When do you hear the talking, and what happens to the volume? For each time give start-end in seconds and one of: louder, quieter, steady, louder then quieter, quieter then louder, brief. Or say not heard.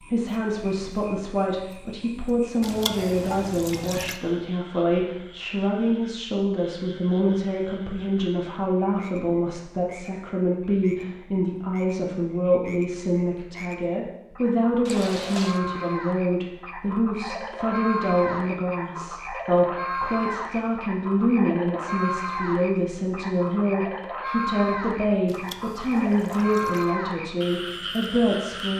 0.0-28.7 steady.